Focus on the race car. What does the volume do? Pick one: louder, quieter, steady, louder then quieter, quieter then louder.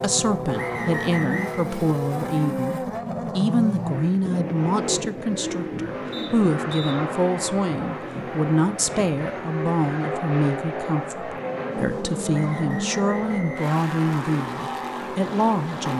steady.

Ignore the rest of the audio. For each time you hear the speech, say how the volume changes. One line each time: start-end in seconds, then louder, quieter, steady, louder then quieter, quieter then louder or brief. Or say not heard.
0.0-15.9 steady.